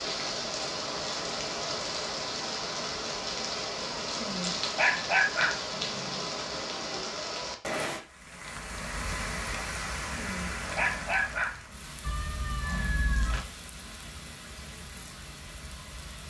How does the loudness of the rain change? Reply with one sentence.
The volume of the rain goes down.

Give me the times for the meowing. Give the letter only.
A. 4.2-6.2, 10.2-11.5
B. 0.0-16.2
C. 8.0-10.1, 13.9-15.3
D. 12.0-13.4
D.